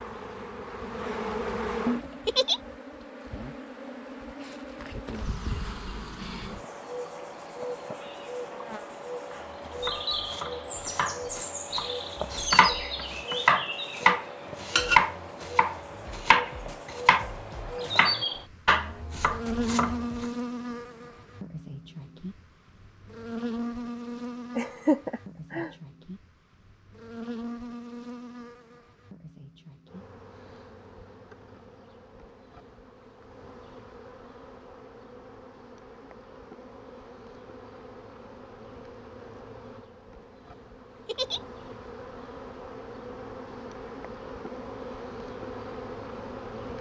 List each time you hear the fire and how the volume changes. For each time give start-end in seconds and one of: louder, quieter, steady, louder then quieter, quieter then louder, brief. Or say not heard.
not heard.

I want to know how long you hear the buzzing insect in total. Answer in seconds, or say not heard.
47 s.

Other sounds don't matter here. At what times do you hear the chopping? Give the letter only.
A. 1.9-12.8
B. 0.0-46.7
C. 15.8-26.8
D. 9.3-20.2
D.